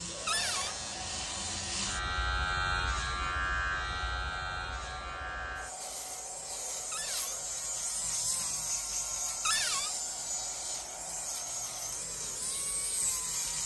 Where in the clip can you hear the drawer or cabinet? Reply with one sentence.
The drawer or cabinet can be heard from 0.2 to 0.8 s, from 6.9 to 7.4 s and from 9.4 to 9.9 s.